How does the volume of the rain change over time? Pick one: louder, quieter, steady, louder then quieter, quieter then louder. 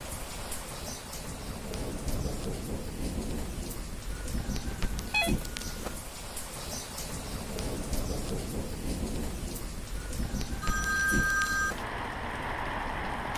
steady.